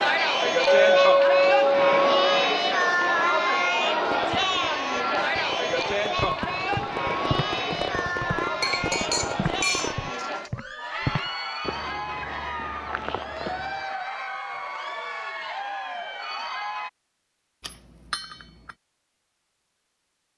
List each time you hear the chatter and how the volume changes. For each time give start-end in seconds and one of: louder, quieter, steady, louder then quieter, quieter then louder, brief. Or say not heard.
0.0-16.9 quieter.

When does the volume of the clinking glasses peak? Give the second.
1 s.